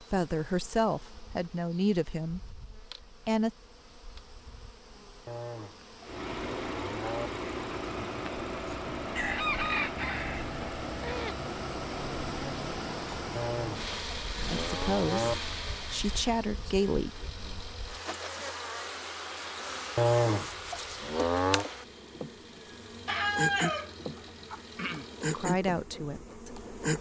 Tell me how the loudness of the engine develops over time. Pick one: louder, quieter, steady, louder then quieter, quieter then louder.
quieter.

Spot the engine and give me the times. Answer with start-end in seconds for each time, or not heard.
6.0-26.9.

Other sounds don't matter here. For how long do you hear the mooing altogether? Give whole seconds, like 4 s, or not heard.
6 s.